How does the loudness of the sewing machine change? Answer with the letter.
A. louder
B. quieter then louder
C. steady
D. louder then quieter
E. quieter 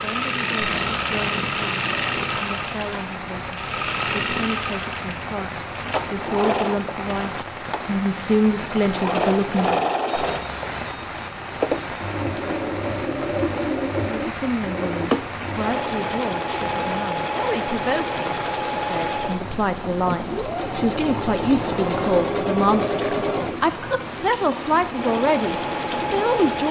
C.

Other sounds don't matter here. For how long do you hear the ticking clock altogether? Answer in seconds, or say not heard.
not heard.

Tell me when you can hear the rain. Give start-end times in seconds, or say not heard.
0.0-26.6.